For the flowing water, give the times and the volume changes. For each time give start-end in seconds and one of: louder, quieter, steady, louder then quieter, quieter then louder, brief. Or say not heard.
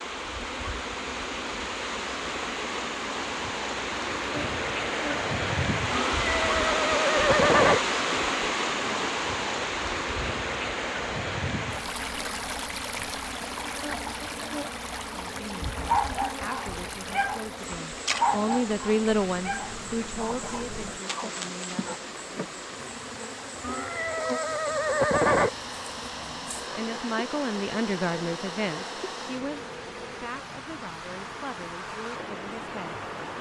0.0-33.3 quieter.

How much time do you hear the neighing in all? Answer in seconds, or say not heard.
4 s.